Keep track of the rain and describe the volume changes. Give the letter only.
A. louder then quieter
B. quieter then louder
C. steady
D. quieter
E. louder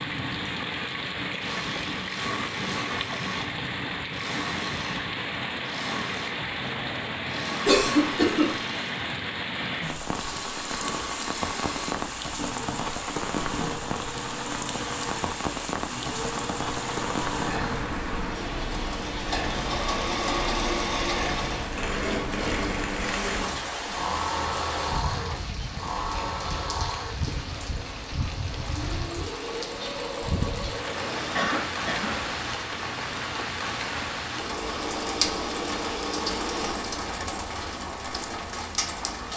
C.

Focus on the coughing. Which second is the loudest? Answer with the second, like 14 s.
8 s.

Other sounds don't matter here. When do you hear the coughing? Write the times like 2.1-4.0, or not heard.
7.7-8.4, 31.3-32.3.